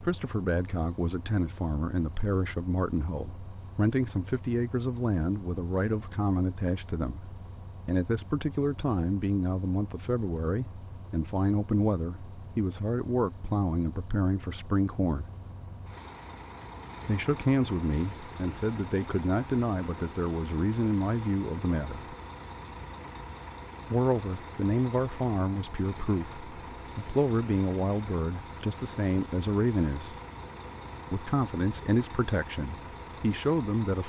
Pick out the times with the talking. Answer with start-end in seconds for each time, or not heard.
0.0-15.2, 17.1-22.1, 23.9-30.1, 31.1-34.0.